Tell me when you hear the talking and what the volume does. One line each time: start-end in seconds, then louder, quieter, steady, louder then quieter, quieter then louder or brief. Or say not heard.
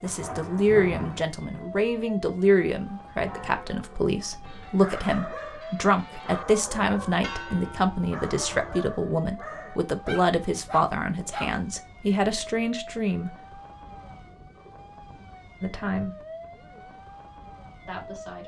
0.0-13.3 steady
15.6-16.1 brief
17.9-18.4 brief.